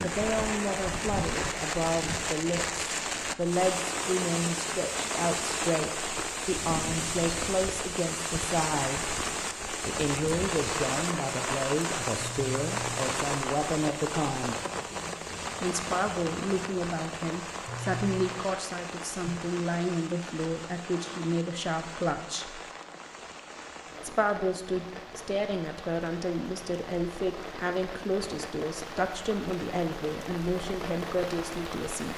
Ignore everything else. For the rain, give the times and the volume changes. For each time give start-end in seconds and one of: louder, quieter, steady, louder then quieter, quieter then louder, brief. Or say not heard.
0.0-32.1 quieter.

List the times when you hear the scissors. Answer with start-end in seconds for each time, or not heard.
12.2-13.1, 17.6-18.3.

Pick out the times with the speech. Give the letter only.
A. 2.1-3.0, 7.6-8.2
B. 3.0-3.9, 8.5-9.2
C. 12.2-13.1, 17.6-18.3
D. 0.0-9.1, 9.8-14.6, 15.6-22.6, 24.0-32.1
D.